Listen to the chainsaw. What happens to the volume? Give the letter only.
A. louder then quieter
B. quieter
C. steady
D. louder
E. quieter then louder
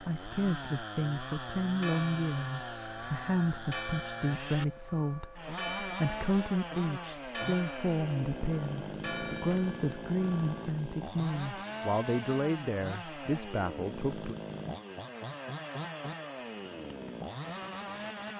C.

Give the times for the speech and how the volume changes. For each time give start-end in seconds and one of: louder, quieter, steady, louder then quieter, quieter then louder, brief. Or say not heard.
0.0-14.3 steady.